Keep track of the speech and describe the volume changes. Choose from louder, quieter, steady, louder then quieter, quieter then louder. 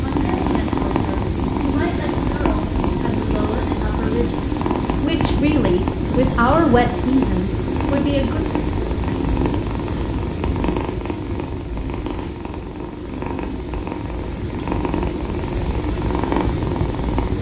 louder.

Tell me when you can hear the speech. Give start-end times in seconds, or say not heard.
0.0-8.4.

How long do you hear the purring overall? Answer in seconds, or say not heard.
17 s.